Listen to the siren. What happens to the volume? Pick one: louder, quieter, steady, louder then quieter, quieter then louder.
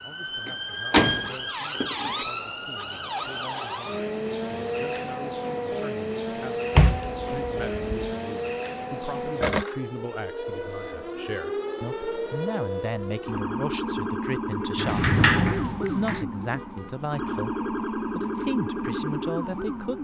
steady.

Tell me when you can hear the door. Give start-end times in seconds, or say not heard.
0.5-2.2, 6.8-8.1, 14.8-16.2.